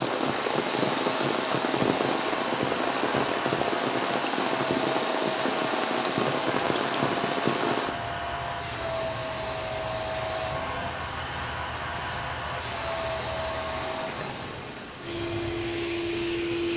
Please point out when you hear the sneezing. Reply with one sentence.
The sneezing can't be heard in this clip.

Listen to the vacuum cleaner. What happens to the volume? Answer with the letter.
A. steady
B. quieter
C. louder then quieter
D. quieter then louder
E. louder
A.